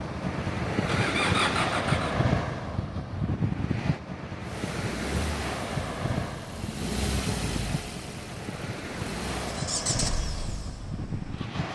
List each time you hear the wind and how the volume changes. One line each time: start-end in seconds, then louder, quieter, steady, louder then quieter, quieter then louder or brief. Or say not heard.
0.0-11.7 quieter.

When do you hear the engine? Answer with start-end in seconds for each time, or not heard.
0.7-2.2, 4.4-11.7.